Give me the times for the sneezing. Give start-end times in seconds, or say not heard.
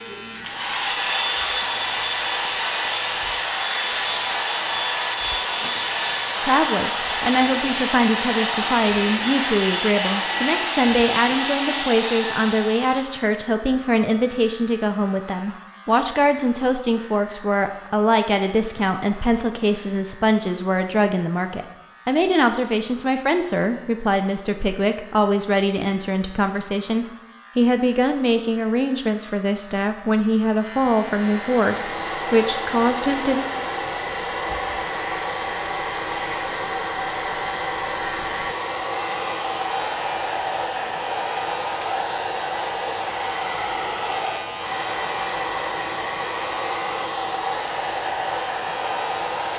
not heard.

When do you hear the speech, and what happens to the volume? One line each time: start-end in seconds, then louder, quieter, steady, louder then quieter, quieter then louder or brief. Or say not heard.
6.4-33.5 steady.